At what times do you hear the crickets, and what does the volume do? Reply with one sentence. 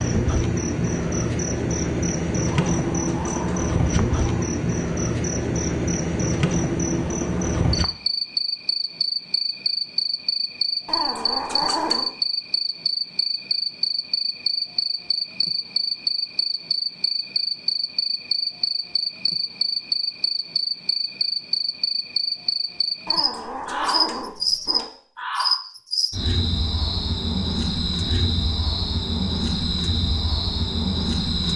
You can hear the crickets from 0.0 to 31.5 s, at a steady volume.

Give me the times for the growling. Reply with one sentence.
You can hear the growling from 2.5 to 4.5 s, from 10.8 to 12.1 s and from 23.1 to 24.9 s.